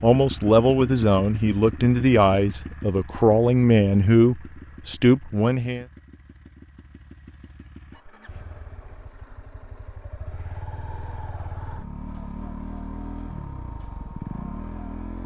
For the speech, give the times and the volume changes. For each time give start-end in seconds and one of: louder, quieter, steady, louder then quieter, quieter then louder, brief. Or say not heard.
0.0-5.8 steady.